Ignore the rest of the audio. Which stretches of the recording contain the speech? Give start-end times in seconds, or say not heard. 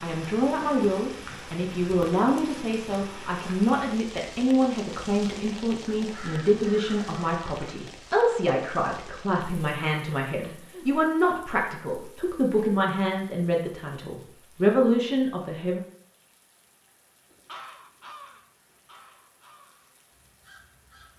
0.0-15.8.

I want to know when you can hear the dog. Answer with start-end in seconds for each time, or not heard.
not heard.